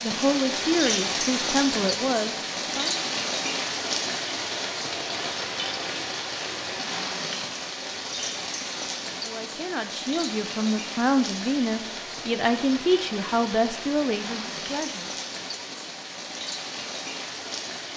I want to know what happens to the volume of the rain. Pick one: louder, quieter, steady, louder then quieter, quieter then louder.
quieter.